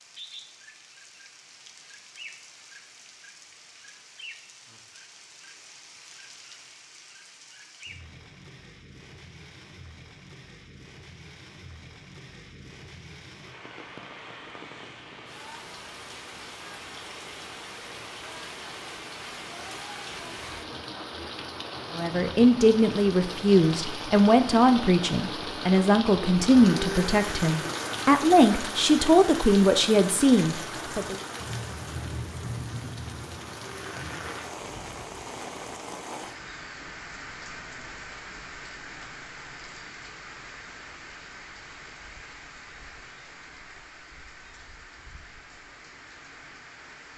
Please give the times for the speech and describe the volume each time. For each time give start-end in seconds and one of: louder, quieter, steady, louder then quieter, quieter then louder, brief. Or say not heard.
21.9-31.1 steady.